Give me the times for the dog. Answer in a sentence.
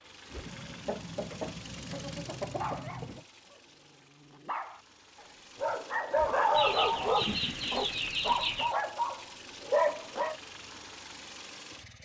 The dog can be heard from 2.5 to 10.3 s.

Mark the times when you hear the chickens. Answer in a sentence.
You can hear the chickens from 0.4 to 3.2 s and from 6.5 to 8.8 s.